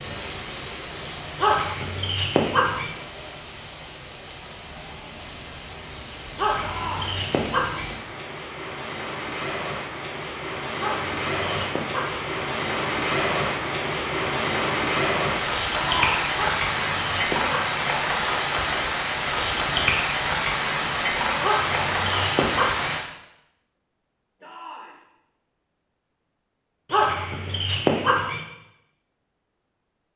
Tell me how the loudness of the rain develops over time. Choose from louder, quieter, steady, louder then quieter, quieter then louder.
louder.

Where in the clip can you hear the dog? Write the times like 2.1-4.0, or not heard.
1.4-2.9, 6.3-7.9, 10.8-12.2, 16.4-17.8, 21.4-22.9, 26.9-28.4.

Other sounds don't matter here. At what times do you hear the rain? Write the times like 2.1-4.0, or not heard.
0.0-23.1.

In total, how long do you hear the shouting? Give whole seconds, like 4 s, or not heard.
2 s.